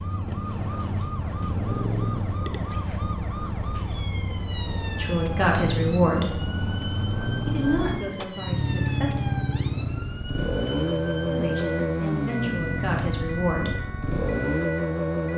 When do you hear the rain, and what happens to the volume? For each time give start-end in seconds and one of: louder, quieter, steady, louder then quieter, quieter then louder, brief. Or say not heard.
not heard.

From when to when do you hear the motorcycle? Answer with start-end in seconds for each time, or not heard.
0.0-15.3.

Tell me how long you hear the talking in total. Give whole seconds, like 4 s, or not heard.
6 s.